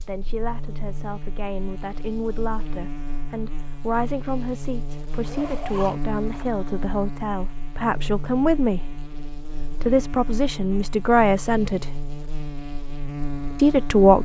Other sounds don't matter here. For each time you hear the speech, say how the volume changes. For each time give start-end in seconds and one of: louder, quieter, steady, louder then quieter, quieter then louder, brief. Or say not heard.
0.0-12.0 louder
13.6-14.1 brief.